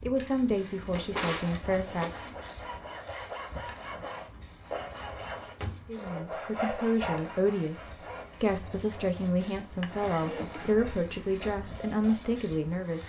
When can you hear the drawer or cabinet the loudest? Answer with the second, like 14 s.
1 s.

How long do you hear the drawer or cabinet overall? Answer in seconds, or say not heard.
4 s.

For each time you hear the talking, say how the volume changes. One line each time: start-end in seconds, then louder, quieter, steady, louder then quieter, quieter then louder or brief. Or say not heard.
0.0-2.2 brief
5.8-13.0 steady.